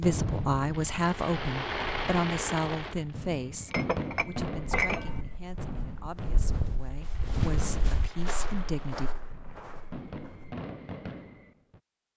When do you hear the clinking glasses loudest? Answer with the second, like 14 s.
5 s.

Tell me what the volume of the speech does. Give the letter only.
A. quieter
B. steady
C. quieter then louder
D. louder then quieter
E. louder
C.